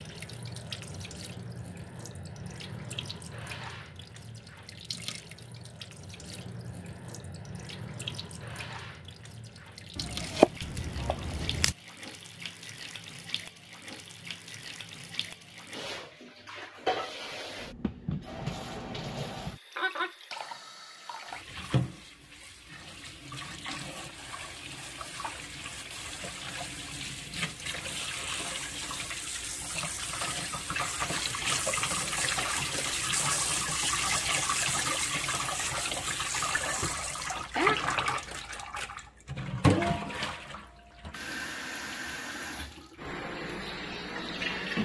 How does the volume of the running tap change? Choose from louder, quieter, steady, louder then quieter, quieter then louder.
louder.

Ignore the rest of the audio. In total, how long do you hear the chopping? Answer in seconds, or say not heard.
2 s.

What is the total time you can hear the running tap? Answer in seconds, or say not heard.
45 s.